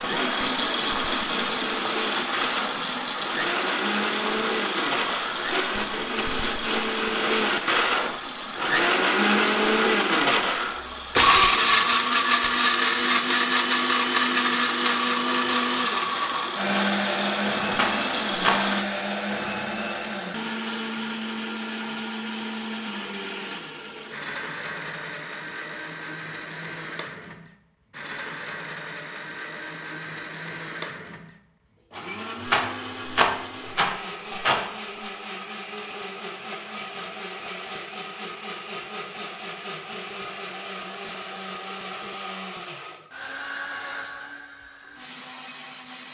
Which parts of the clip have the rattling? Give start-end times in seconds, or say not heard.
17.8-18.6, 32.5-34.6.